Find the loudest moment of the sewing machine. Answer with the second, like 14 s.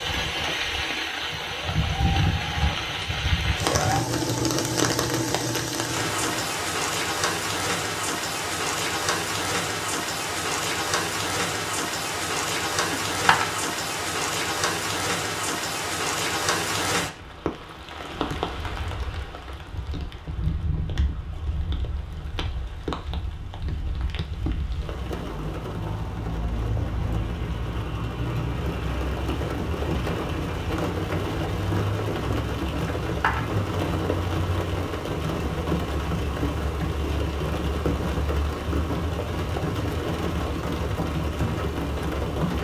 4 s.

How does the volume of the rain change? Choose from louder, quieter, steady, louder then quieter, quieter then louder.
quieter then louder.